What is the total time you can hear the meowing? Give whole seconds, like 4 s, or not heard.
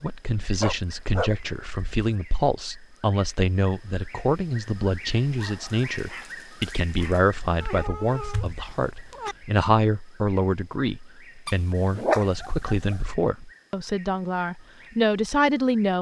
2 s.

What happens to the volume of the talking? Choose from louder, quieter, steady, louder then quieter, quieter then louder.
steady.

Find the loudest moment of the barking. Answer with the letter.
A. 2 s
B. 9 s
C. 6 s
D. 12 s
D.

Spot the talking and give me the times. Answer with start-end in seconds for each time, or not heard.
0.0-15.9.